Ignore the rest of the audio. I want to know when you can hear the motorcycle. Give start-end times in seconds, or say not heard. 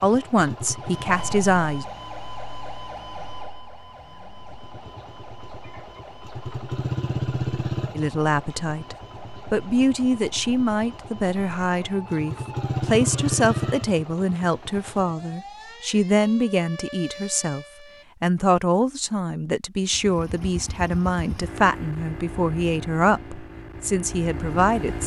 0.0-1.6, 4.4-15.2, 19.9-25.0.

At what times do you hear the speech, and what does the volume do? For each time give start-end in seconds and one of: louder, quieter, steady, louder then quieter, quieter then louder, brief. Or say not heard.
0.0-1.9 brief
8.0-25.0 steady.